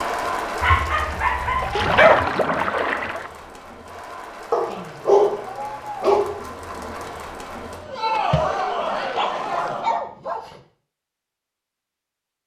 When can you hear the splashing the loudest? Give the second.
2 s.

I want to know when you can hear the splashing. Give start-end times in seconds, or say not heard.
1.6-3.3, 8.2-9.7.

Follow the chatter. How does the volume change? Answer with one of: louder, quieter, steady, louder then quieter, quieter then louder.
quieter then louder.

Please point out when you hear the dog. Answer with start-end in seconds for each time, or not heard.
0.6-2.3, 4.5-6.5, 8.8-10.6.